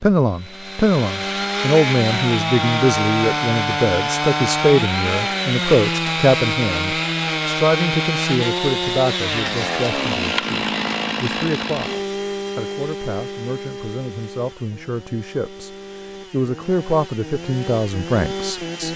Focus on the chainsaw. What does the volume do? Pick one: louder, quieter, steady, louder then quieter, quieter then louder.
quieter.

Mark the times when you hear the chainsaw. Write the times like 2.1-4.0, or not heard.
0.0-18.9.